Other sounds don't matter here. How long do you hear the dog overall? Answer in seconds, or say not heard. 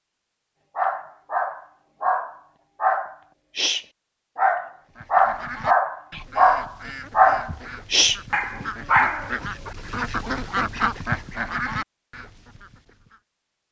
9 s.